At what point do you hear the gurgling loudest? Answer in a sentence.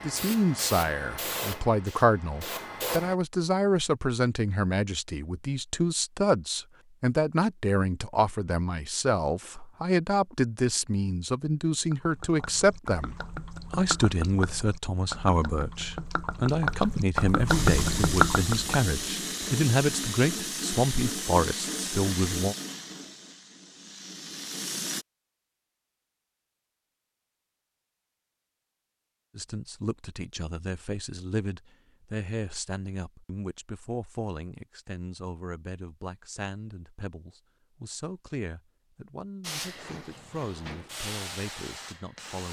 The volume of the gurgling peaks at 18 seconds.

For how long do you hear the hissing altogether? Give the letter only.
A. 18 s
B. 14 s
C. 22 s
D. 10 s
B.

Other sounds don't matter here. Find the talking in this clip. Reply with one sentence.
You can hear the talking from 0.0 to 22.6 s and from 29.4 to 42.4 s.